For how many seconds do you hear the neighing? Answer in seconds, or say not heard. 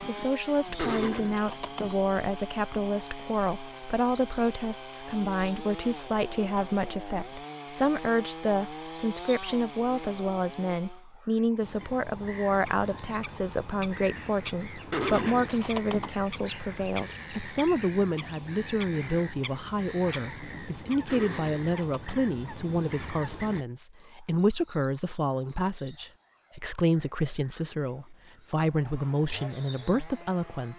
4 s.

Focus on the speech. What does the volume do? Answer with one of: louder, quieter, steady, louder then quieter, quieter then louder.
steady.